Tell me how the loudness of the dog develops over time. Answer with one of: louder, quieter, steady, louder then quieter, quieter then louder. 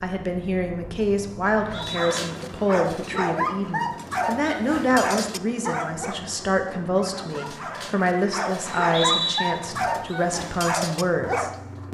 quieter then louder.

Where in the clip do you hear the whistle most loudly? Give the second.
9 s.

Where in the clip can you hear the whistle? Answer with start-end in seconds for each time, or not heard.
1.6-2.2, 8.7-9.4.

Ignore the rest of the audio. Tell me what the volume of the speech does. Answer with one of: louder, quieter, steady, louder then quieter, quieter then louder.
steady.